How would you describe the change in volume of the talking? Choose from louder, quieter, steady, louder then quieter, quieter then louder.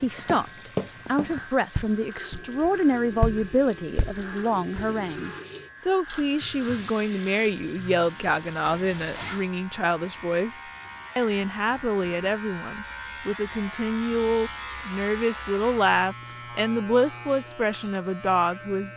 steady.